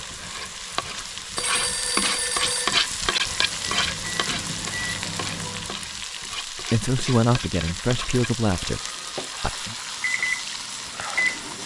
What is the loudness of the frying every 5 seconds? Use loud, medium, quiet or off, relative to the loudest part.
loud, medium, medium.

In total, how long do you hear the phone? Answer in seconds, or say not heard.
3 s.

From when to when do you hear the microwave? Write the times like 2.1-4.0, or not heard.
3.2-5.8, 10.0-11.6.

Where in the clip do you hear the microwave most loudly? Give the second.
11 s.